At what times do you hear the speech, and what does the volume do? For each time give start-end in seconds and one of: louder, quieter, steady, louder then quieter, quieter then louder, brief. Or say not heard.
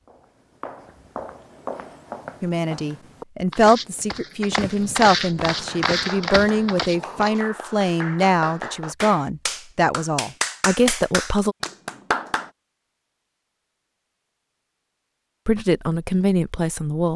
2.4-11.6 steady
15.4-17.1 brief.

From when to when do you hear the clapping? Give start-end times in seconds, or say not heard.
5.5-12.5.